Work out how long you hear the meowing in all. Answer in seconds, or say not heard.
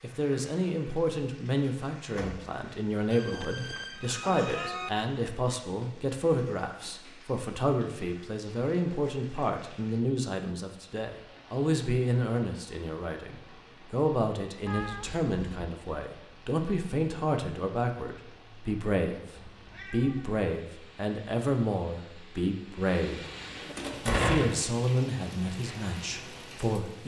4 s.